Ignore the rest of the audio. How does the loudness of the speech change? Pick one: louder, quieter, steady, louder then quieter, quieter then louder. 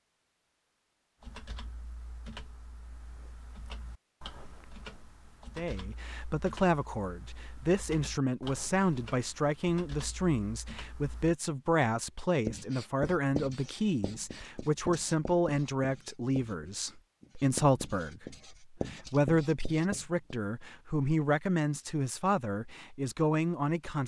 steady.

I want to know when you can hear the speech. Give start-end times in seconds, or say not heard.
5.5-24.0.